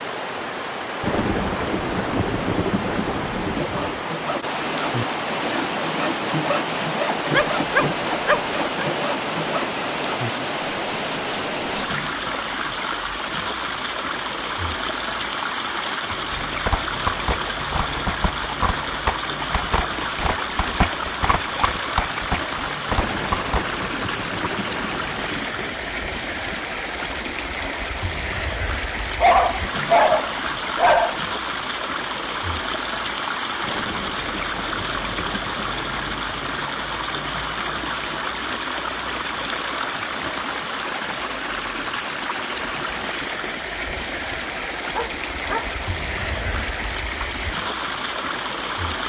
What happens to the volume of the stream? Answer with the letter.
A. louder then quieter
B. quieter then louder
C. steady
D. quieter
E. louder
C.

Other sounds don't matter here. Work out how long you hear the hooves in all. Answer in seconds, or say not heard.
8 s.